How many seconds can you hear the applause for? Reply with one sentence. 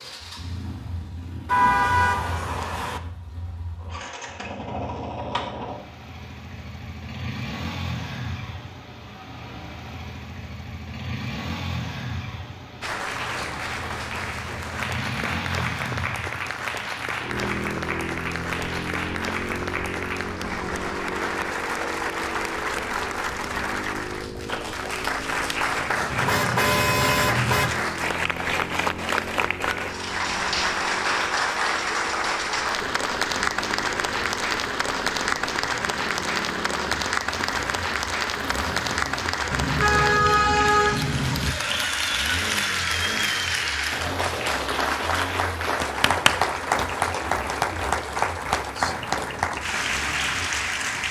You can hear the applause for 38 seconds altogether.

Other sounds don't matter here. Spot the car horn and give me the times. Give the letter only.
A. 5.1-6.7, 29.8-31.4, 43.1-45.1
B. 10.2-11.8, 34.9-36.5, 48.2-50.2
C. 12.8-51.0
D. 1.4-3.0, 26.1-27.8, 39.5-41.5
D.